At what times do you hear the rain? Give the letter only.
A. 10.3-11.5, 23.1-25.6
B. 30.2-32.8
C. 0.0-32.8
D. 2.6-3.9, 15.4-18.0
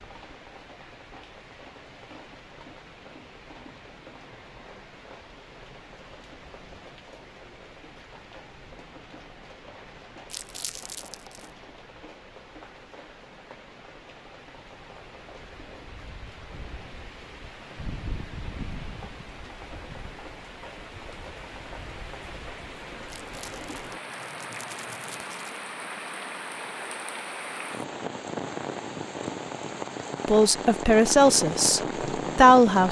C.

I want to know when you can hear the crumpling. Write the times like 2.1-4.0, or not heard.
10.3-11.5, 23.1-25.6.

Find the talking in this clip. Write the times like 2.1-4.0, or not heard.
30.2-32.8.